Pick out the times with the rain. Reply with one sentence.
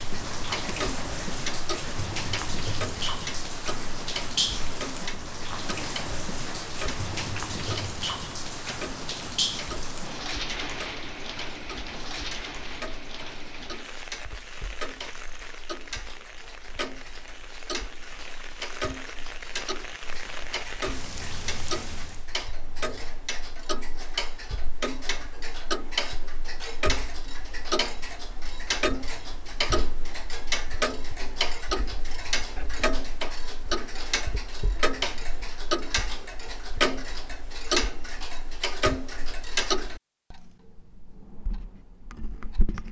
You can hear the rain from 0.0 to 22.3 s.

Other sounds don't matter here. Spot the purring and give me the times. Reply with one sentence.
The purring can't be heard in this clip.